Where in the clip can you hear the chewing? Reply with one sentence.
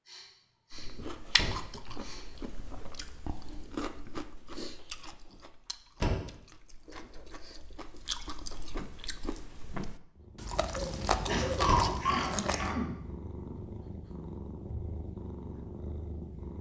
The chewing can be heard from 0.7 to 12.8 s.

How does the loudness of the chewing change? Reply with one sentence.
The volume of the chewing goes down, then up.